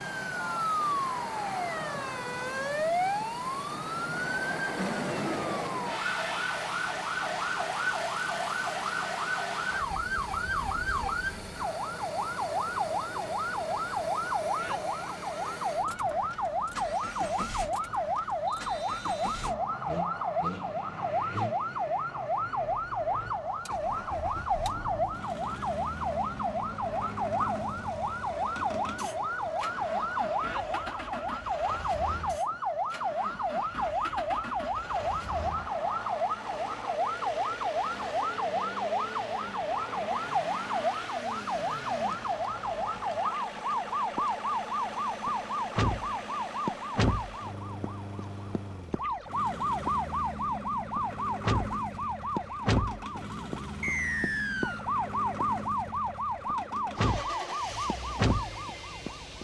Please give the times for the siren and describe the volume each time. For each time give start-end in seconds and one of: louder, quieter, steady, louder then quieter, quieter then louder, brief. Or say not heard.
0.0-59.3 steady.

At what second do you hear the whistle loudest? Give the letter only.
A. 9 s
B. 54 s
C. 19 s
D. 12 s
B.